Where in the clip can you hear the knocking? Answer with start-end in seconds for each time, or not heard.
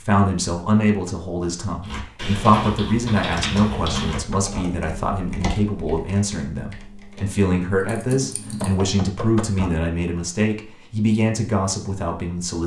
3.5-4.7, 8.4-9.7.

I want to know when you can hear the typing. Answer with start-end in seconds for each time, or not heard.
1.8-8.8.